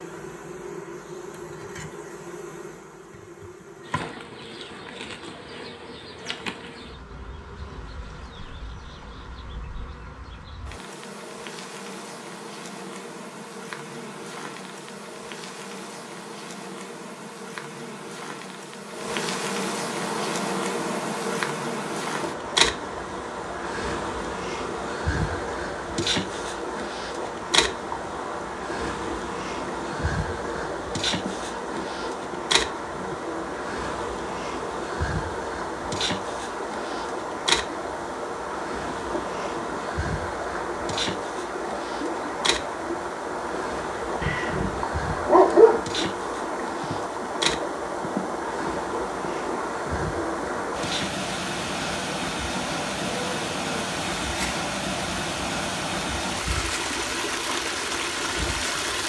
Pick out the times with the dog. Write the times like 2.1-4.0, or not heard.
44.2-45.8.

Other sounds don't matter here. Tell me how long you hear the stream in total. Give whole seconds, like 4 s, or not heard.
39 s.